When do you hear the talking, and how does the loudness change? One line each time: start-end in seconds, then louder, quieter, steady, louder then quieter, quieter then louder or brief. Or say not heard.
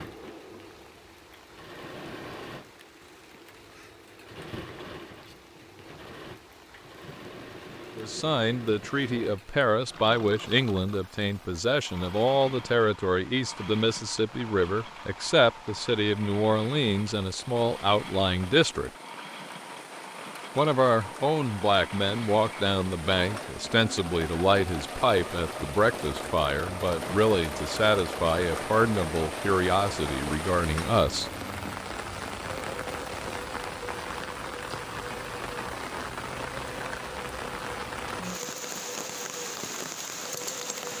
8.0-18.9 steady
20.6-31.3 steady.